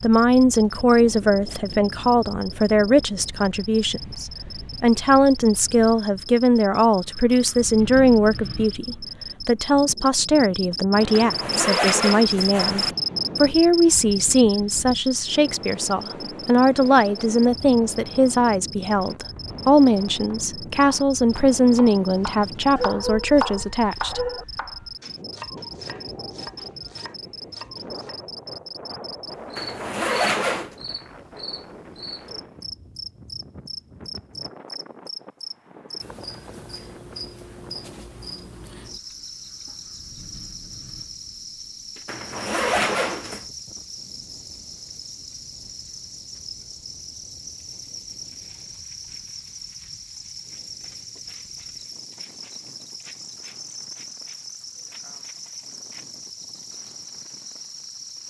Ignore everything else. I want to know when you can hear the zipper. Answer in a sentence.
The zipper can be heard from 11.1 to 12.9 s, from 29.6 to 30.8 s and from 42.0 to 43.4 s.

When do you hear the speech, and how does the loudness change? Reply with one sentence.
You can hear the speech from 0.0 to 24.2 s, at a steady volume.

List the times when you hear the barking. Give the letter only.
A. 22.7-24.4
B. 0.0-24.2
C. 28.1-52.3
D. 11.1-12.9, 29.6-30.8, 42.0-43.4
A.